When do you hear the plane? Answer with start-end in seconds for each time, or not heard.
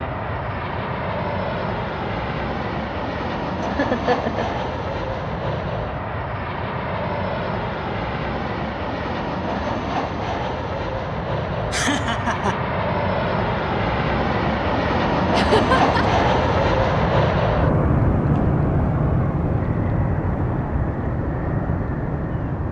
0.0-22.6.